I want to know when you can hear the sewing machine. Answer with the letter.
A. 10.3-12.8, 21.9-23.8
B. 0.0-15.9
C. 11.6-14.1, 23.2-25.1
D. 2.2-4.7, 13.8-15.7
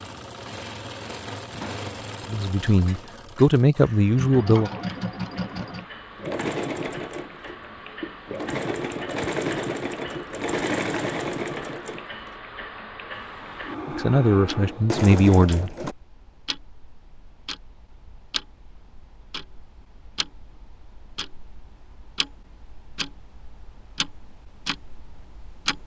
B.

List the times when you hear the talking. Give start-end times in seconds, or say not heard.
2.2-4.7, 13.8-15.7.